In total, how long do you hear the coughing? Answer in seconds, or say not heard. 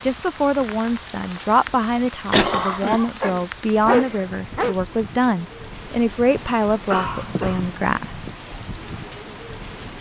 2 s.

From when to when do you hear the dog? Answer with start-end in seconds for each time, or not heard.
3.2-4.8.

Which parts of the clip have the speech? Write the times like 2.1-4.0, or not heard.
0.0-8.3.